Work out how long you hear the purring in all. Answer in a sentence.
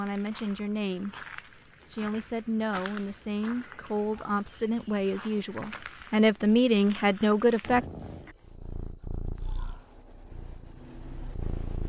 The purring can be heard for 4 seconds in total.